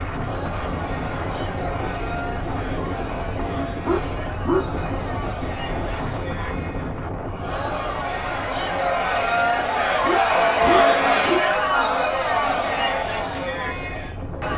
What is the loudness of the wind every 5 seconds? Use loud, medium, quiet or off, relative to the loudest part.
loud, loud, medium.